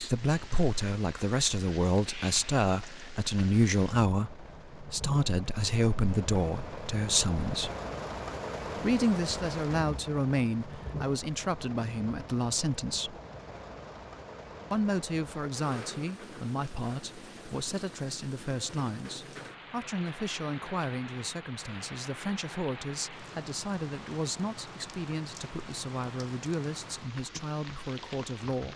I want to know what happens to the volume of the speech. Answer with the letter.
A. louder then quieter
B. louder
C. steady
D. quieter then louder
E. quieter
E.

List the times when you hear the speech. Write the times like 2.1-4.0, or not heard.
0.0-7.7, 8.8-13.2, 14.7-28.7.